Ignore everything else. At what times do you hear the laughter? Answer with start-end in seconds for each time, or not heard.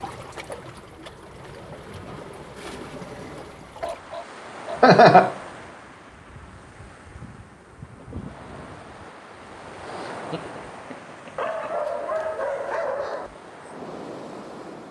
4.8-5.3, 9.8-11.7.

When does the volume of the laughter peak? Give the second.
5 s.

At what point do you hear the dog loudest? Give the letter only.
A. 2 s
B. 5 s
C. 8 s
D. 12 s
D.